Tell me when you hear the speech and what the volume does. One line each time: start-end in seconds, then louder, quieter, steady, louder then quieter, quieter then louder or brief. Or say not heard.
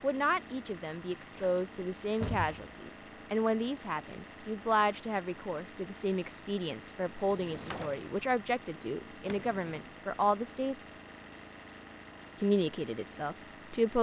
0.0-10.9 steady
12.4-13.9 brief.